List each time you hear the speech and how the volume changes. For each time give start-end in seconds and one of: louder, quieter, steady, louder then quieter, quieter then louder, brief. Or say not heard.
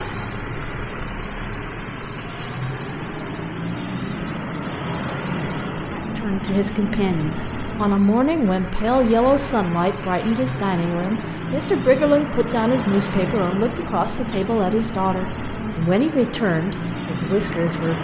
5.9-17.9 steady.